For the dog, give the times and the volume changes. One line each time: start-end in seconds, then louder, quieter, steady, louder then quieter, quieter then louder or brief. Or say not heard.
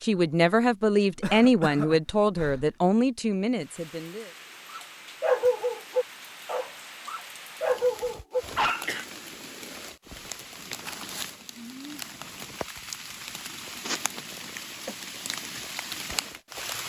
4.7-8.9 quieter then louder.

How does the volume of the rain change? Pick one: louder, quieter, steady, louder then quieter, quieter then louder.
louder.